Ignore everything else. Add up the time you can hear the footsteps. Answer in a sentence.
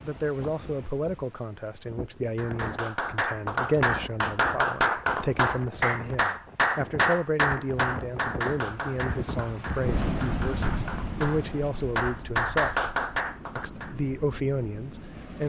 The footsteps can't be heard in this clip.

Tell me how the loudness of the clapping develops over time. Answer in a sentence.
The volume of the clapping goes down, then up.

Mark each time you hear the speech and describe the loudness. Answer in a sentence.
You can hear the speech from 0.0 to 12.8 s, at a steady volume; and briefly from 13.6 to 15.4 s.